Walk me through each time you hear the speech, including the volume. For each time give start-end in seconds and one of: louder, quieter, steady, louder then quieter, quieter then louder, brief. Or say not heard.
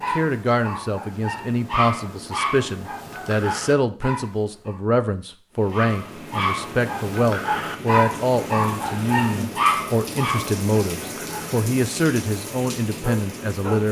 0.1-13.8 steady.